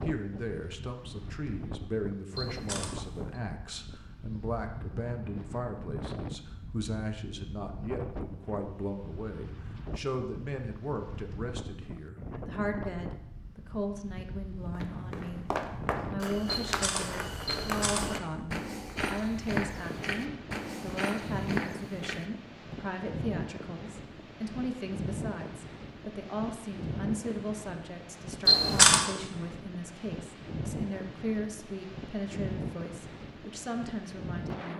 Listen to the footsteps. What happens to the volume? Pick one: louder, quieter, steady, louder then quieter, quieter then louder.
steady.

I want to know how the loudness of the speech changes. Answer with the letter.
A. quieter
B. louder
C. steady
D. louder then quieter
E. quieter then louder
C.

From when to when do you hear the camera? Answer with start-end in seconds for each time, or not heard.
2.4-3.4, 16.6-18.1, 28.4-29.1.